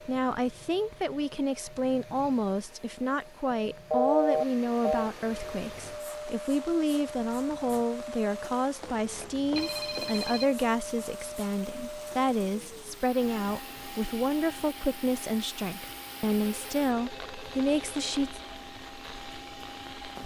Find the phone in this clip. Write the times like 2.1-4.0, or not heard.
3.9-5.1, 8.8-10.4, 16.2-18.2.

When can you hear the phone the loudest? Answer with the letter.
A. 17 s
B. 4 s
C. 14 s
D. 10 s
B.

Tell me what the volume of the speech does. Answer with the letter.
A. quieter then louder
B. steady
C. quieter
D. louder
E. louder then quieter
B.